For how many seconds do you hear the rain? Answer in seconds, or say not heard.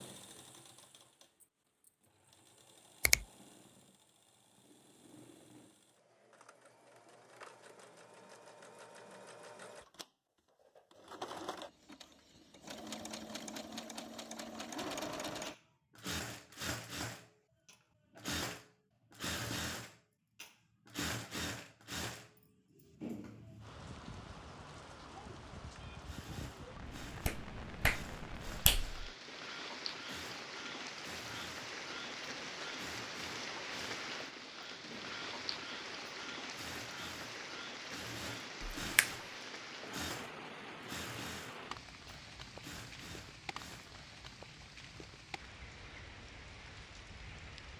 24 s.